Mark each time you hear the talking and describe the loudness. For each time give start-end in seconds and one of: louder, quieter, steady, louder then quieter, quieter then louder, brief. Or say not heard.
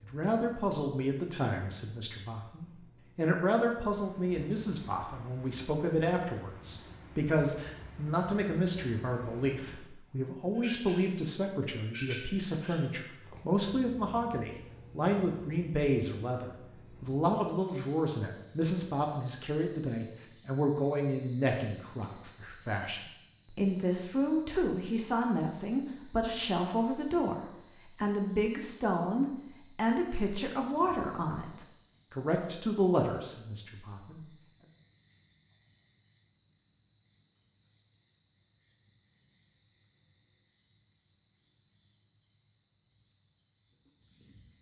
0.0-34.2 steady.